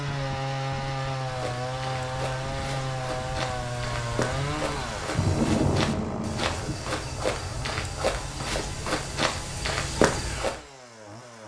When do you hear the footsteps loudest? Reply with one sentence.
The loudest moment of the footsteps is at 10 seconds.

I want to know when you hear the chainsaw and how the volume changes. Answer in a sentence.
You can hear the chainsaw from 0.0 to 11.4 s, getting quieter.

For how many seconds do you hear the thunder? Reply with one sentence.
The thunder can be heard for 2 seconds in total.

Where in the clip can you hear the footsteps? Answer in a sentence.
You can hear the footsteps from 1.2 to 10.6 s.